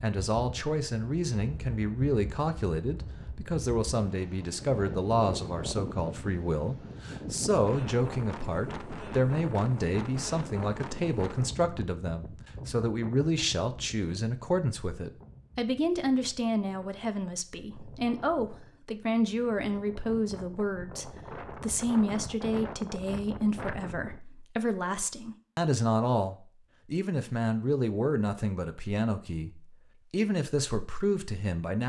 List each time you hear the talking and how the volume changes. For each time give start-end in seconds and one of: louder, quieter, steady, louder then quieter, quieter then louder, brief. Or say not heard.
0.0-31.8 steady.